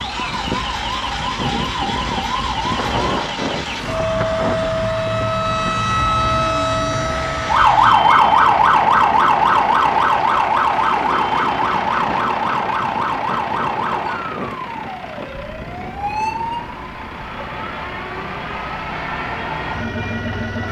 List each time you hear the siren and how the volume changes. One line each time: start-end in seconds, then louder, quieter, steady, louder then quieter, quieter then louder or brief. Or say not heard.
0.0-20.6 louder then quieter.